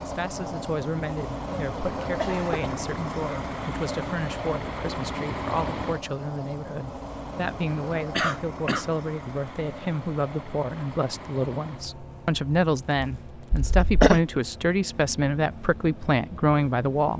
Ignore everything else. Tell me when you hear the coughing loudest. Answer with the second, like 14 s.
14 s.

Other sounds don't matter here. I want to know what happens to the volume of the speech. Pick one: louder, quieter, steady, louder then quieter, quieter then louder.
louder.